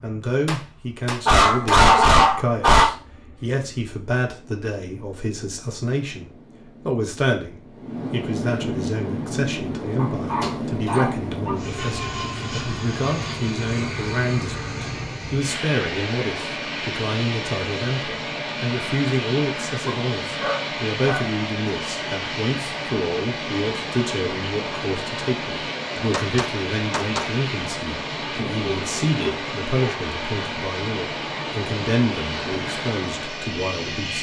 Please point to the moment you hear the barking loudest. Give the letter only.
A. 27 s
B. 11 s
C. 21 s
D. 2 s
D.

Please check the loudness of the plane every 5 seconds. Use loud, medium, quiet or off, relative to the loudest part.
quiet, loud, loud, loud, loud, loud, loud.